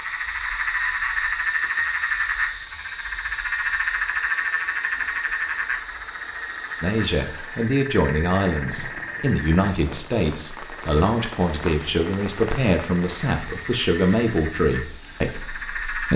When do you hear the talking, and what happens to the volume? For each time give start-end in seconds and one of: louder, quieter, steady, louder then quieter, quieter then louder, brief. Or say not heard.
6.8-16.1 steady.